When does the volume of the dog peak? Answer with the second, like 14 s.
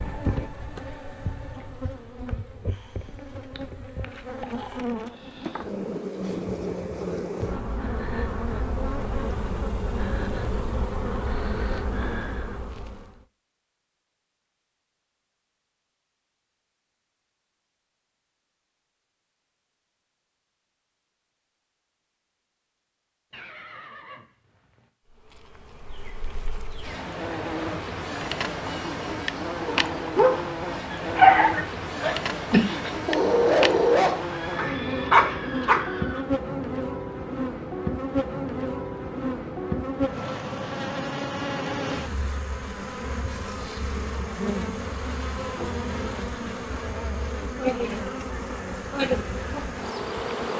31 s.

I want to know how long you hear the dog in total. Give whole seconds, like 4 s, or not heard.
6 s.